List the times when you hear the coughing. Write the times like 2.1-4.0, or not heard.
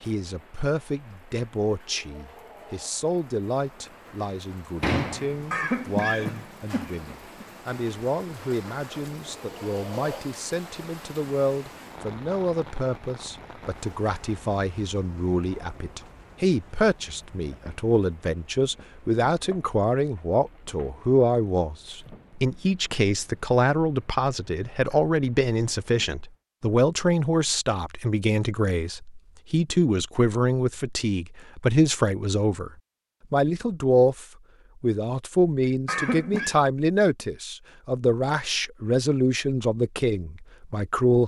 5.5-7.5, 35.9-36.5.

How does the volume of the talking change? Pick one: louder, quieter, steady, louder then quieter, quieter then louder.
louder.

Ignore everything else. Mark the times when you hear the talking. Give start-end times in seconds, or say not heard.
0.0-32.7, 33.3-41.2.